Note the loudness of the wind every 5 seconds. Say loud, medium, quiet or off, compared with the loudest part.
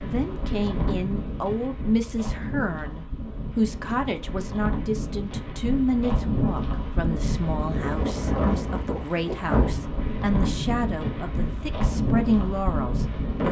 medium, loud, loud.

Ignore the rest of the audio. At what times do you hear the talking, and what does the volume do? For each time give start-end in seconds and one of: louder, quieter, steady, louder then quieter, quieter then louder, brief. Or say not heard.
0.0-13.4 steady.